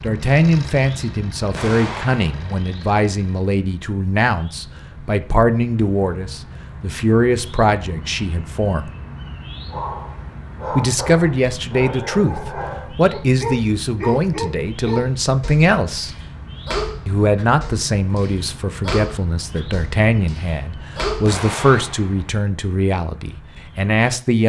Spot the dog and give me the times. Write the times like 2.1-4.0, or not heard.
9.7-21.3.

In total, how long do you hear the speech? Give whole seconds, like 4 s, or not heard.
22 s.